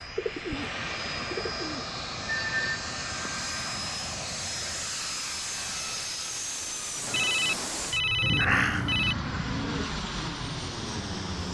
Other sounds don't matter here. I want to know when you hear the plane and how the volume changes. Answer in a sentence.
The plane can be heard from 0.0 to 11.5 s, at a steady volume.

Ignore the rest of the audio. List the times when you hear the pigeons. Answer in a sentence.
You can hear the pigeons from 0.1 to 1.9 s and from 8.2 to 9.9 s.